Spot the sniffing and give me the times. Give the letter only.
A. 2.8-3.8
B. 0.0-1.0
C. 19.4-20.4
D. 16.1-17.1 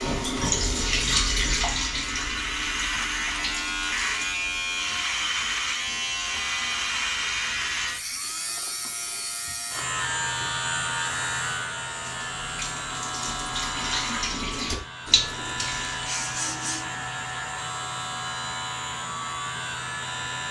D.